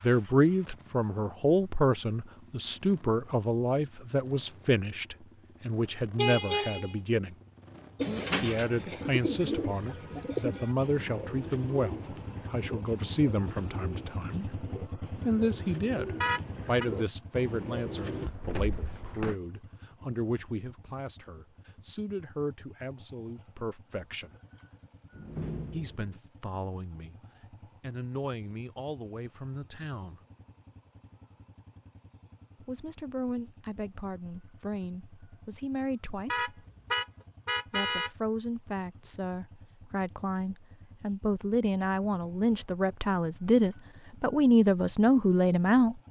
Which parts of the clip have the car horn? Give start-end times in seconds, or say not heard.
6.2-7.0, 16.2-16.9, 36.3-38.1.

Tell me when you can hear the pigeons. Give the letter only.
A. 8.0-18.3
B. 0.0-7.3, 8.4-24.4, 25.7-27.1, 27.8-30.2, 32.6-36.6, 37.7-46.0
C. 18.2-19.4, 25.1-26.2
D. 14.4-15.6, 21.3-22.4
A.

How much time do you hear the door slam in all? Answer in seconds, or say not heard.
2 s.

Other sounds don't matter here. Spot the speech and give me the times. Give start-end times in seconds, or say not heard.
0.0-7.3, 8.4-24.4, 25.7-27.1, 27.8-30.2, 32.6-36.6, 37.7-46.0.